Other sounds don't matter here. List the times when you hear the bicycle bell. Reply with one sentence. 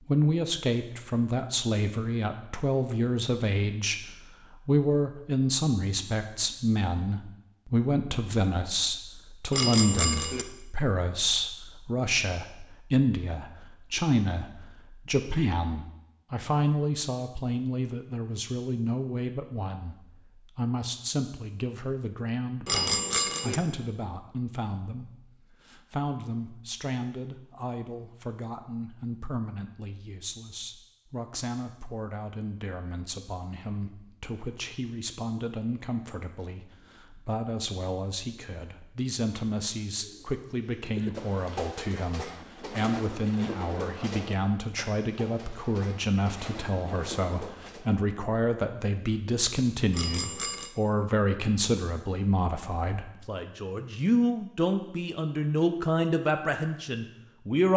You can hear the bicycle bell from 9.5 to 10.4 s, from 22.6 to 23.6 s and from 49.9 to 50.7 s.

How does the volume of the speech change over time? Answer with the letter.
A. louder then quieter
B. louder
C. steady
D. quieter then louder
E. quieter
D.